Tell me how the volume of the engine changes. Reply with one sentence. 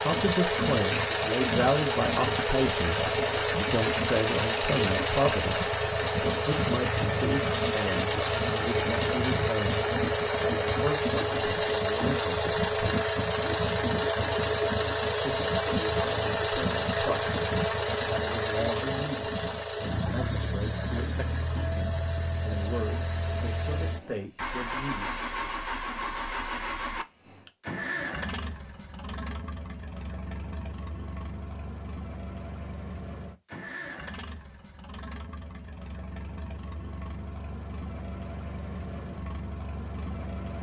The volume of the engine goes down.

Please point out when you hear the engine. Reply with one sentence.
You can hear the engine from 0.0 to 40.5 s.